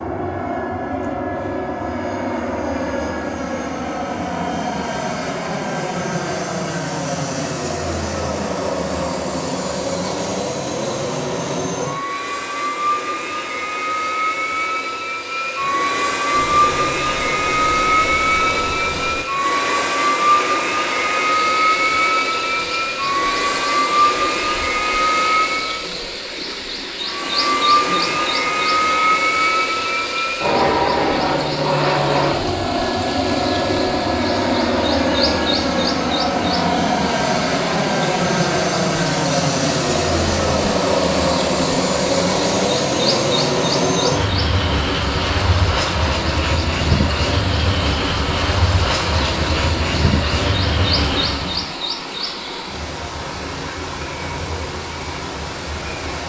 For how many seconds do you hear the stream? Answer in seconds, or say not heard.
40 s.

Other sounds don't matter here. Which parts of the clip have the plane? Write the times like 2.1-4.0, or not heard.
0.0-25.9, 27.0-51.7.